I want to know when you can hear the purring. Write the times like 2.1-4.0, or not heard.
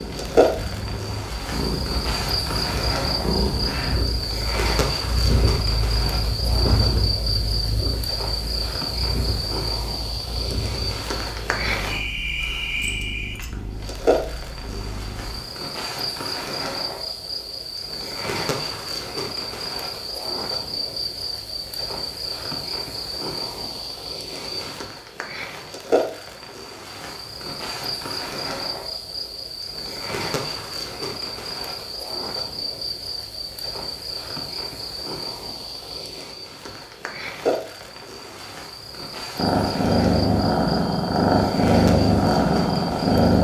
0.0-15.4, 39.4-43.3.